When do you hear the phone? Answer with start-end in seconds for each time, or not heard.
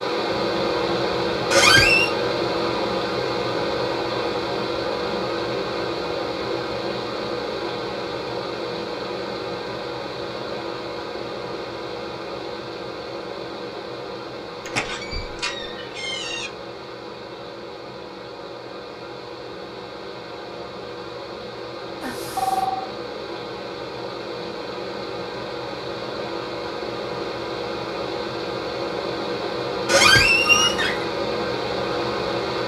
22.0-22.9.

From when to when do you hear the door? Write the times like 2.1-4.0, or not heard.
1.5-2.1, 14.7-16.5, 29.9-31.1.